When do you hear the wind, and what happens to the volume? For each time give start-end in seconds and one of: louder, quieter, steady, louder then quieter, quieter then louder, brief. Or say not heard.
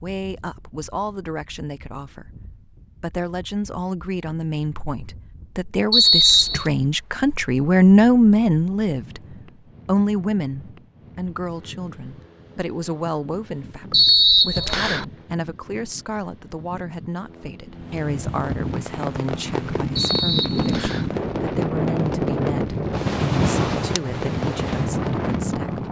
0.0-25.8 louder.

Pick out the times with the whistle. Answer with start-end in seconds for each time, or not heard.
5.9-6.7, 13.9-15.1, 19.9-21.1.